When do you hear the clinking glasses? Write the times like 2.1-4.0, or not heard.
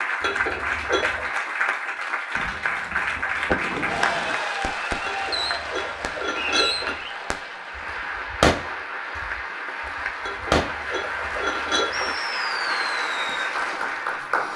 0.2-1.3, 5.0-7.0, 10.2-12.2.